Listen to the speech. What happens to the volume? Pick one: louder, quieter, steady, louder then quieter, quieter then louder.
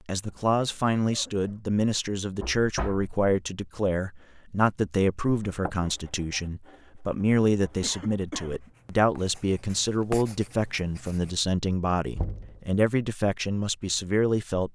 steady.